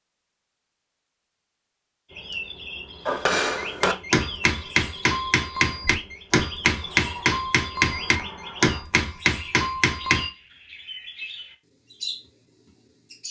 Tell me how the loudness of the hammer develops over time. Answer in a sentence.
The volume of the hammer stays about the same.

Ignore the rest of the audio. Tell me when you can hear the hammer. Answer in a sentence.
You can hear the hammer from 3.0 to 10.3 s.